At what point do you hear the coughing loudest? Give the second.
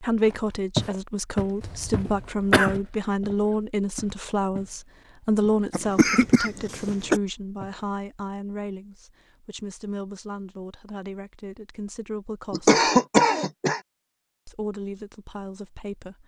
13 s.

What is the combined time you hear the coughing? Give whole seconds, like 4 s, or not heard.
4 s.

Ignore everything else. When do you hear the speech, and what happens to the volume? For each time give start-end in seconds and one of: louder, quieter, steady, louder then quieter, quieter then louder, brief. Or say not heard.
0.0-12.8 quieter
14.4-16.2 brief.